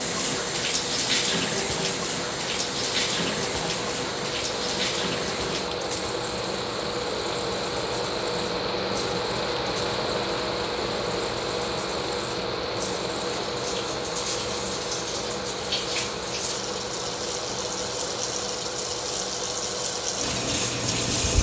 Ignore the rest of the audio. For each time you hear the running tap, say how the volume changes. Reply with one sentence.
The running tap can be heard from 0.0 to 21.3 s, getting quieter then louder.